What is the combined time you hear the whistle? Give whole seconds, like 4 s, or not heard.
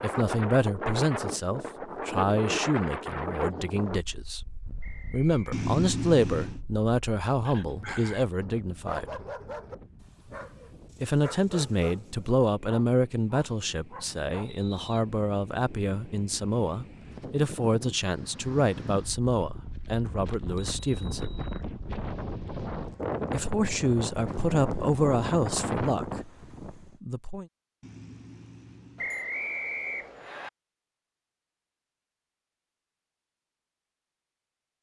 3 s.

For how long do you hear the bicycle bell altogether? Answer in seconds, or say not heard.
4 s.